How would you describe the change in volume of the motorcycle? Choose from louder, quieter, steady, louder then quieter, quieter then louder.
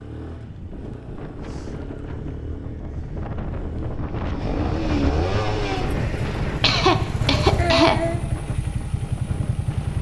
louder.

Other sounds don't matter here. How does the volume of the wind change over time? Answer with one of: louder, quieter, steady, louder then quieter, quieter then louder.
louder then quieter.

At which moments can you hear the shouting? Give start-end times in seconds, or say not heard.
not heard.